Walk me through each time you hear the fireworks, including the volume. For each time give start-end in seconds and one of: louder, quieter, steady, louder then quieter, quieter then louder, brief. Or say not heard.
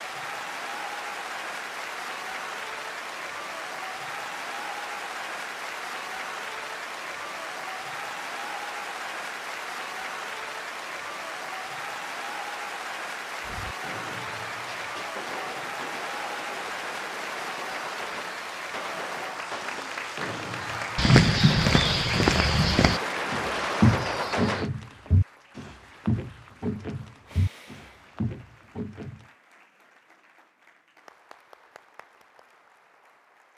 13.4-24.7 louder.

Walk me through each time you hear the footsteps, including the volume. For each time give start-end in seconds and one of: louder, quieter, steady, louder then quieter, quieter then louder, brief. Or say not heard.
20.9-29.2 quieter.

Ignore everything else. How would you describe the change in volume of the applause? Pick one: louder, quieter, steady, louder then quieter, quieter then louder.
quieter.